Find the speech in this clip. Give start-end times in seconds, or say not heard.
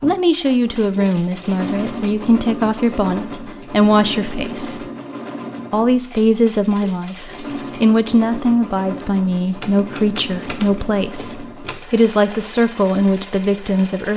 0.0-4.8, 5.7-14.1.